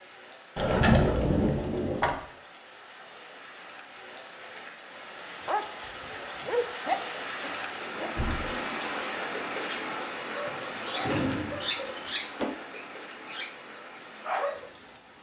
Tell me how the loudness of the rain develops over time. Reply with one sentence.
The loudness of the rain goes up, then down.